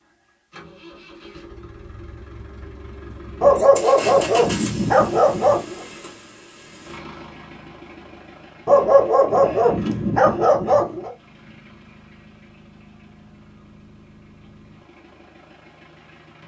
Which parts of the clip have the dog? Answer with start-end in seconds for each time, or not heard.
3.4-5.8, 8.7-11.1.